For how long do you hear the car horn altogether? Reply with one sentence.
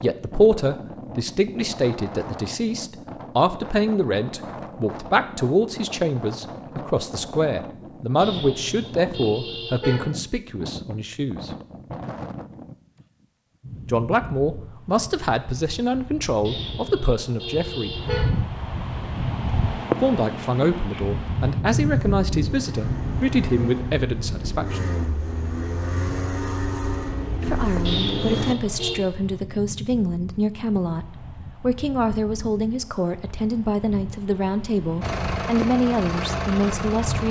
You can hear the car horn for 5 seconds altogether.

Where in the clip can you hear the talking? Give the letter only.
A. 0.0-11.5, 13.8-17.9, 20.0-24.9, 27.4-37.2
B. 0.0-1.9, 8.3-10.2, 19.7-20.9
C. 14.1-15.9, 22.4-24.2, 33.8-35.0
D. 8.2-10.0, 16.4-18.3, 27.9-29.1
A.